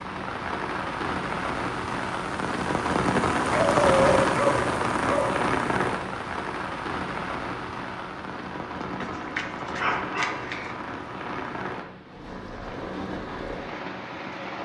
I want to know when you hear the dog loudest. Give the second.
4 s.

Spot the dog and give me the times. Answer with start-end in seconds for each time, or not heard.
3.5-5.4, 9.0-10.7.